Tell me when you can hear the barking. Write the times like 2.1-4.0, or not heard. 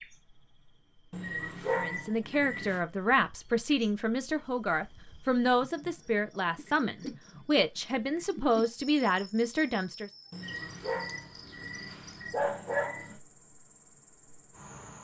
1.1-2.8, 10.3-13.2.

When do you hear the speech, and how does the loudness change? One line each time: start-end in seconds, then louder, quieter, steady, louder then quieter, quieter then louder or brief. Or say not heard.
1.8-10.1 steady.